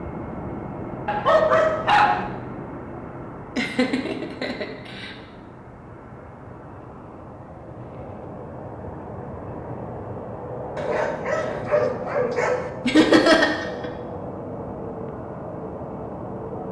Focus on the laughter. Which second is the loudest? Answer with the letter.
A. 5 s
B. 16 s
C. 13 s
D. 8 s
C.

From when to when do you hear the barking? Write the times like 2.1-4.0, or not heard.
1.1-2.2, 10.8-12.7.